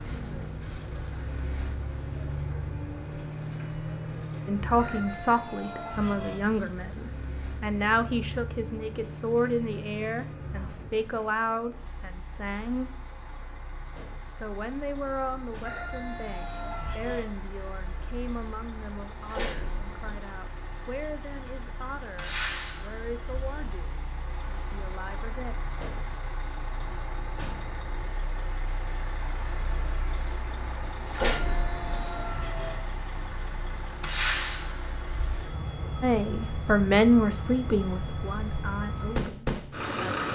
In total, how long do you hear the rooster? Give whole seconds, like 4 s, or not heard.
5 s.